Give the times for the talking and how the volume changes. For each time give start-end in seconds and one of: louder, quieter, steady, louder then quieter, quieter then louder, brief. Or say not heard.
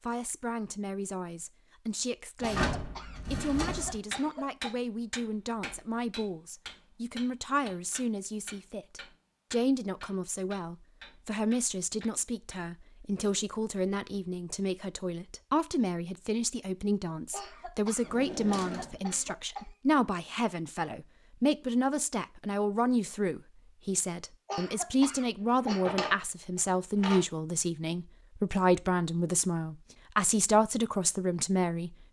0.0-31.9 louder.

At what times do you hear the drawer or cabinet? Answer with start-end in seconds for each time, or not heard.
2.4-4.0, 18.0-19.2, 25.6-27.2.